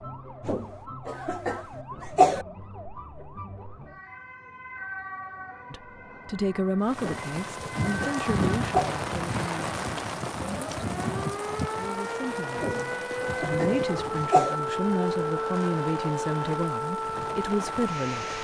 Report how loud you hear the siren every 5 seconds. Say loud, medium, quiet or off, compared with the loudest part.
medium, medium, loud, loud.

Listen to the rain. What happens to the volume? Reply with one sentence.
The volume of the rain goes down.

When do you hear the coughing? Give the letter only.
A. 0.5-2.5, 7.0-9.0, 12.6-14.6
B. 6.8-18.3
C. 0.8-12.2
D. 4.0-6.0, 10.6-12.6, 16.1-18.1
A.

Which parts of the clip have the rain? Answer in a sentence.
You can hear the rain from 6.8 to 18.3 s.